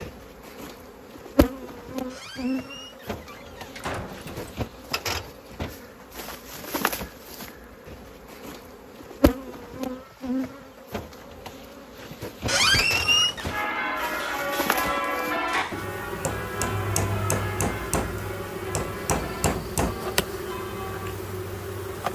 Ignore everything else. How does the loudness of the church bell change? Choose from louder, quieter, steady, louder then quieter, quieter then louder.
quieter.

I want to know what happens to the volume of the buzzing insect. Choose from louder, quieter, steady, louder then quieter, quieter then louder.
steady.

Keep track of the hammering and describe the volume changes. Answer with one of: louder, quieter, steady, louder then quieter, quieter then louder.
louder.